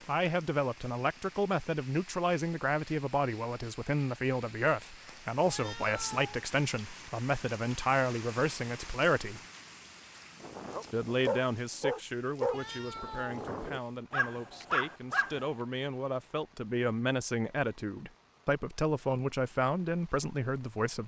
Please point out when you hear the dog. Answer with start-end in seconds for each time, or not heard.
10.3-15.4.